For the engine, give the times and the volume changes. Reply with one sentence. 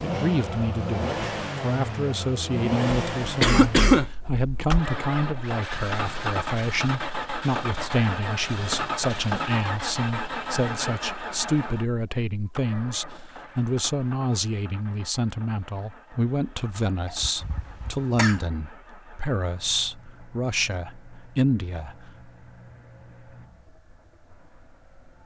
The engine can be heard from 0.0 to 25.2 s, getting quieter.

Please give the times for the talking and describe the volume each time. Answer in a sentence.
The talking can be heard from 0.0 to 22.1 s, at a steady volume.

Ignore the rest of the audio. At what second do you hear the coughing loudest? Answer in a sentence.
The volume of the coughing peaks at 4 seconds.